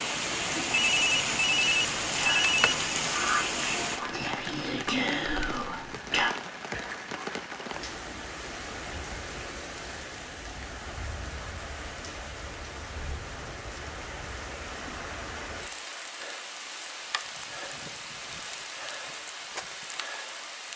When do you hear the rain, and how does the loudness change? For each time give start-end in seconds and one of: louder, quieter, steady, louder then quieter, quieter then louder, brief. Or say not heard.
0.0-20.7 quieter.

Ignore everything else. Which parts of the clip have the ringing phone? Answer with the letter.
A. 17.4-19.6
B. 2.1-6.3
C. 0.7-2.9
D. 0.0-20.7
C.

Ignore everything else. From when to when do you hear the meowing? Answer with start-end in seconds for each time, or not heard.
not heard.